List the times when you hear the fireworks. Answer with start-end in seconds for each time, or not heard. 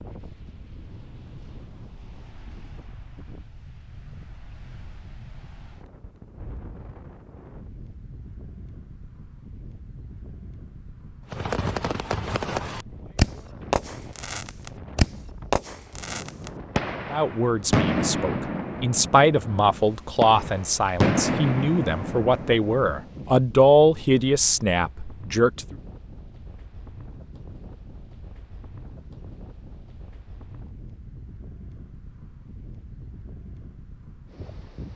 11.3-23.1.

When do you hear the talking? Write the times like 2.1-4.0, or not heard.
17.1-25.8.